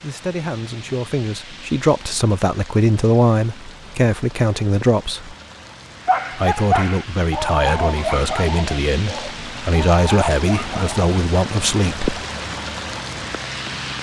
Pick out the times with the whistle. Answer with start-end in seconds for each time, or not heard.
not heard.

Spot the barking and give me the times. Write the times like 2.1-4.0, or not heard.
6.0-11.0.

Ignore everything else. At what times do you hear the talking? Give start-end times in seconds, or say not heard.
0.0-5.3, 6.3-12.2.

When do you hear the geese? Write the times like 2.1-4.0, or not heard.
not heard.